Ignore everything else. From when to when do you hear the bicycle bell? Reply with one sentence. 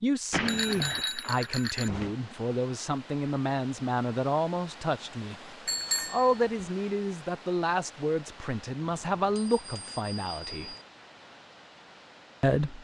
You can hear the bicycle bell from 0.3 to 2.1 s, from 5.7 to 6.7 s and from 8.8 to 10.8 s.